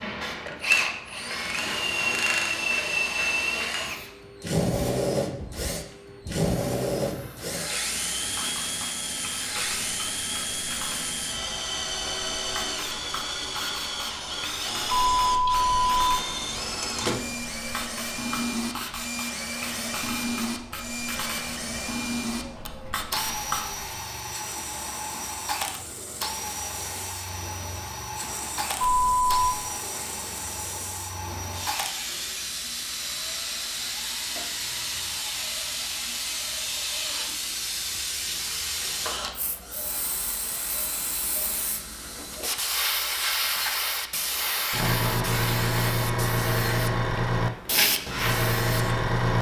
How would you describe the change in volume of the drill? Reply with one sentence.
The loudness of the drill goes down.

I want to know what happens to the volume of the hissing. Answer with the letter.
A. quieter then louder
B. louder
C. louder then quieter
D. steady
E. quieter
B.